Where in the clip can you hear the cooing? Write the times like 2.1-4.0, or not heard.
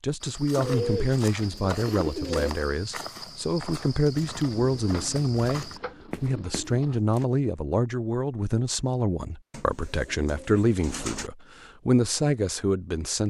0.6-2.5, 4.8-7.0, 9.5-11.3.